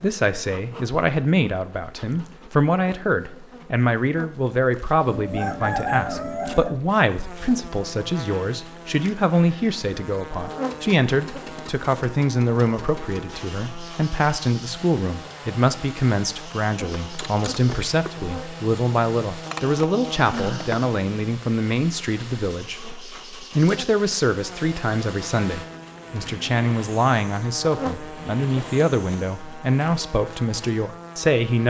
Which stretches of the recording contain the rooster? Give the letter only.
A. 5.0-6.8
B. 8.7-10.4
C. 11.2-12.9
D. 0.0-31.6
A.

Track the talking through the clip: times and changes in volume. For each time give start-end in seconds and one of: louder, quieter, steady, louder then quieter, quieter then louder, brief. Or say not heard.
0.0-31.6 steady.